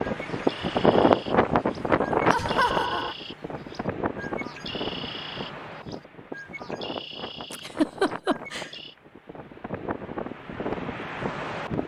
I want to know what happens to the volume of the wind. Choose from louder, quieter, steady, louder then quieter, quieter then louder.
quieter then louder.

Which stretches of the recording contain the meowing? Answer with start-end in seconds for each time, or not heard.
not heard.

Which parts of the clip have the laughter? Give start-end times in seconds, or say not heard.
2.3-3.1, 7.5-8.7.